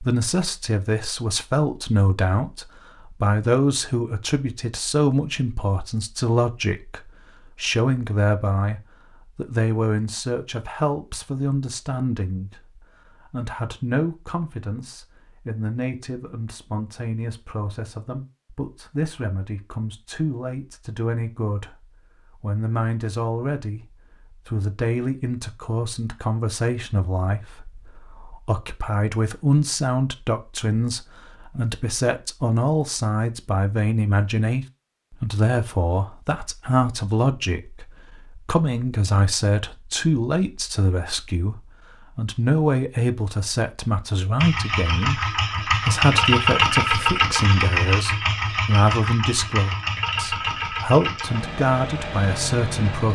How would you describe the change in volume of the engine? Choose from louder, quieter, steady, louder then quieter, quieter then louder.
quieter.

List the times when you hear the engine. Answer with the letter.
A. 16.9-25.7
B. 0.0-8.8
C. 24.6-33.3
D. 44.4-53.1
D.